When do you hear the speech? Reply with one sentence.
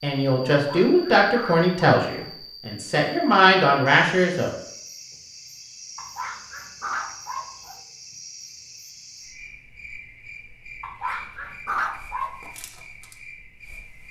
The speech can be heard from 0.0 to 4.5 s.